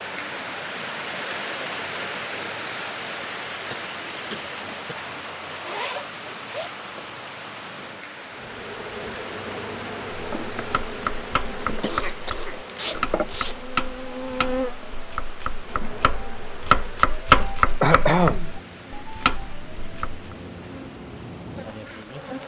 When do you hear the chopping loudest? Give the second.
17 s.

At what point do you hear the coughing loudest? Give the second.
18 s.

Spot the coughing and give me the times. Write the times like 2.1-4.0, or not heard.
3.7-5.1, 11.8-12.7, 17.4-18.5.